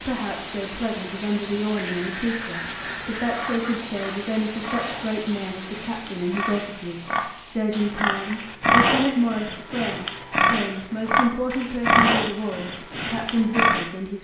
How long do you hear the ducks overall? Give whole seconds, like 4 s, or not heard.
2 s.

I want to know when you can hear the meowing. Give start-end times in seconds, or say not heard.
not heard.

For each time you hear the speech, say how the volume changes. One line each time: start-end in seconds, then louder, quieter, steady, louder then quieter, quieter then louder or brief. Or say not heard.
0.0-14.1 steady.